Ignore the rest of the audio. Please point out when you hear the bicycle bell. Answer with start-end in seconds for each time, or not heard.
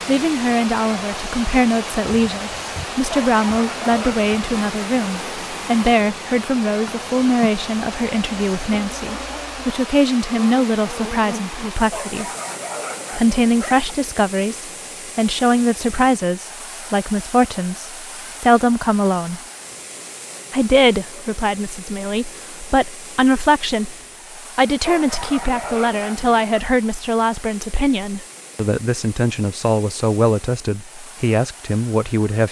not heard.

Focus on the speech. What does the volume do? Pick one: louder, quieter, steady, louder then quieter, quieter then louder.
steady.